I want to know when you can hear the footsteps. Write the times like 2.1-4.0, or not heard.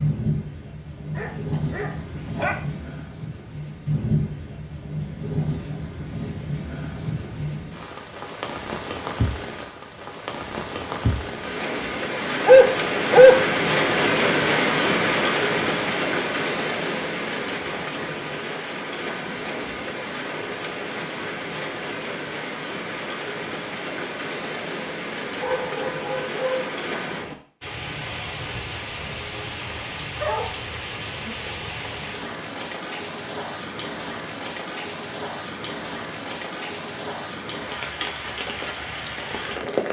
not heard.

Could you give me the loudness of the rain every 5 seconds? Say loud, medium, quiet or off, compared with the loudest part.
medium, medium, loud, loud, medium, medium, medium, medium.